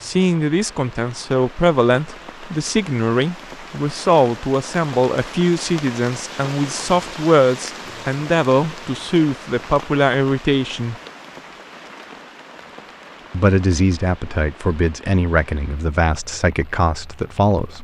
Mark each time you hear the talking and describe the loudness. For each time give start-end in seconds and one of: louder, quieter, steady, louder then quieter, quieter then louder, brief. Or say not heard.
0.0-10.9 steady
13.3-17.7 steady.